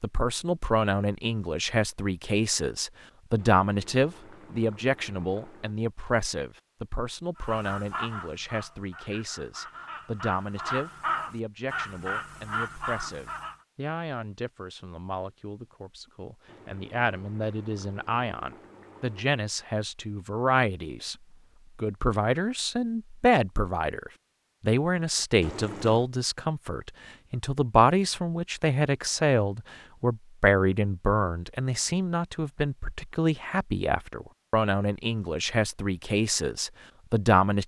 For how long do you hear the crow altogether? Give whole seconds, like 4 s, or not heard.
6 s.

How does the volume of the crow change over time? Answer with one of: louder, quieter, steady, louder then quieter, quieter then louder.
quieter then louder.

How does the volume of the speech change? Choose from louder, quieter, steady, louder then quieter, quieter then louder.
quieter then louder.